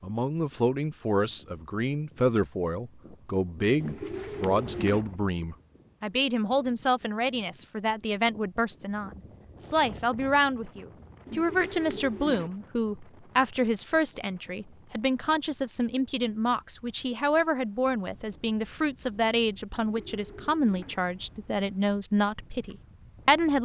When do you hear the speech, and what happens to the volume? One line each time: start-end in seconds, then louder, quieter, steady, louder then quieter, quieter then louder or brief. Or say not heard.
0.0-23.6 steady.